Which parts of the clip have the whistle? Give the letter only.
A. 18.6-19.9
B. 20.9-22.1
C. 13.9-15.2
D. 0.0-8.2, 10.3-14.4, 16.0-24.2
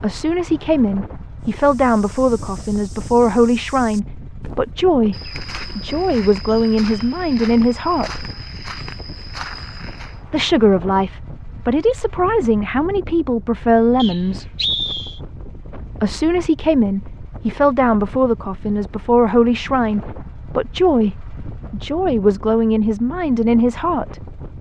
C.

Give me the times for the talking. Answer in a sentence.
You can hear the talking from 0.0 to 8.2 s, from 10.3 to 14.4 s and from 16.0 to 24.2 s.